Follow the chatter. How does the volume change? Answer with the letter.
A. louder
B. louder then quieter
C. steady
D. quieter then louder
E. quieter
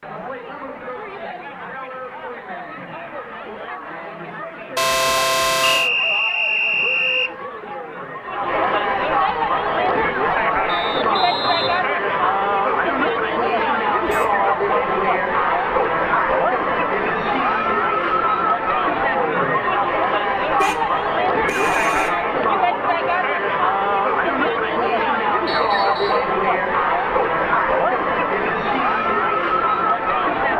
A.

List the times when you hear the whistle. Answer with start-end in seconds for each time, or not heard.
5.6-7.3, 10.7-11.9, 25.4-26.3.